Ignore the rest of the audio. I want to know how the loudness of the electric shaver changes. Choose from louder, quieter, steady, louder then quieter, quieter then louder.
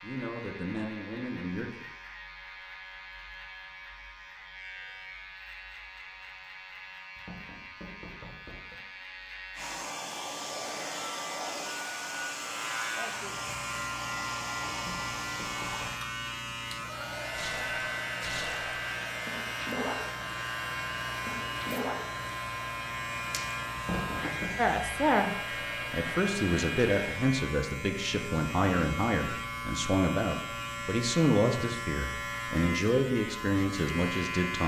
louder.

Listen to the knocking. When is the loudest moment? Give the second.
24 s.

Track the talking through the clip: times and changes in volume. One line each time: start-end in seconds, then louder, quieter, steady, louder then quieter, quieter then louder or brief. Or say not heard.
0.0-1.9 brief
24.6-34.6 steady.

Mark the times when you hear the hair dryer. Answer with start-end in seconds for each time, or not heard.
9.6-27.2.